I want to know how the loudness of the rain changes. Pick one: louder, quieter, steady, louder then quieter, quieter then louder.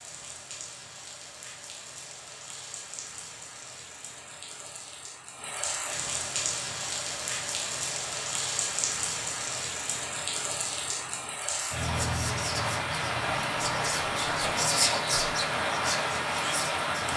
louder.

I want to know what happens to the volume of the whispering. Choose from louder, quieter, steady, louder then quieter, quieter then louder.
louder then quieter.